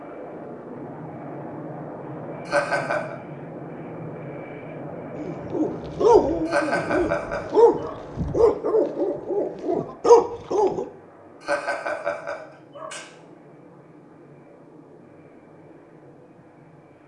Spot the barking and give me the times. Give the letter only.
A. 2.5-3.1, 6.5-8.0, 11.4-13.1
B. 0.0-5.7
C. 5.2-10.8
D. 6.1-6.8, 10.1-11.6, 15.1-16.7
C.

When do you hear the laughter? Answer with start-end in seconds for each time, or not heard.
2.5-3.1, 6.5-8.0, 11.4-13.1.